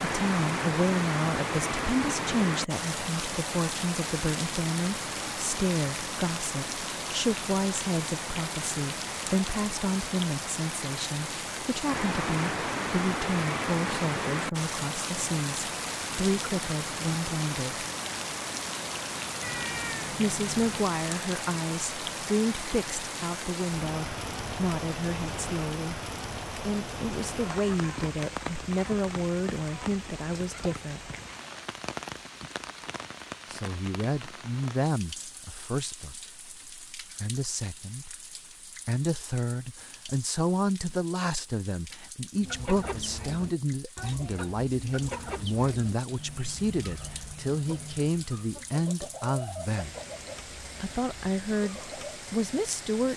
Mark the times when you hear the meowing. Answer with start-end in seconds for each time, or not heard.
19.4-20.9.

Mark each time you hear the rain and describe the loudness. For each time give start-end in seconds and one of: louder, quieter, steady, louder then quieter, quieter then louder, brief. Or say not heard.
0.0-53.1 quieter.